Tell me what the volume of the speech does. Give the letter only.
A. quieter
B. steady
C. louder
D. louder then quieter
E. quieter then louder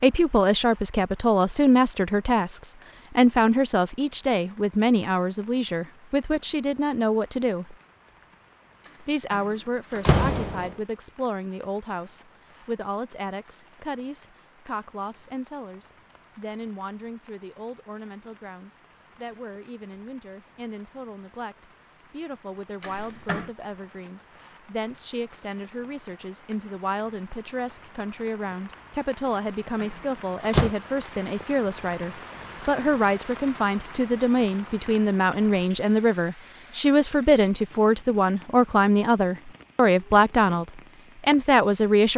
E.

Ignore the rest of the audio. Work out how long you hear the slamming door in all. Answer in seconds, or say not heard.
3 s.